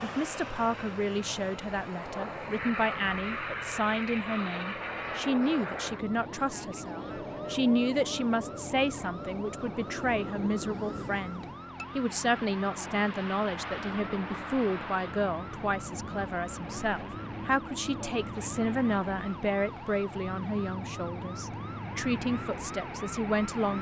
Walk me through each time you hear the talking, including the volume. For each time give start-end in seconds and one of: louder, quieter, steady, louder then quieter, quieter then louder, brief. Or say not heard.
0.0-23.7 steady.